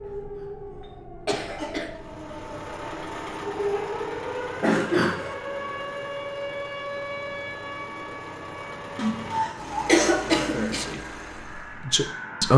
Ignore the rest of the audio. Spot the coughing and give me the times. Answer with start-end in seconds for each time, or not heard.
1.2-1.9, 4.6-5.3, 8.9-10.9.